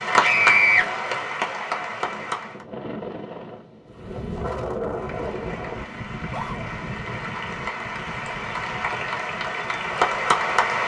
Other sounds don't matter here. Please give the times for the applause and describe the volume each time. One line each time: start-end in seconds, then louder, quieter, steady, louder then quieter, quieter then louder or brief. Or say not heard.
0.0-2.6 brief
4.9-10.8 louder.